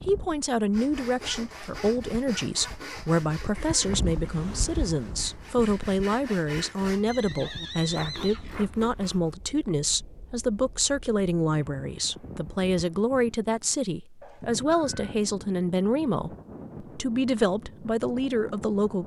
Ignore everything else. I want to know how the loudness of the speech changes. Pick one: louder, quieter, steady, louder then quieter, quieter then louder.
steady.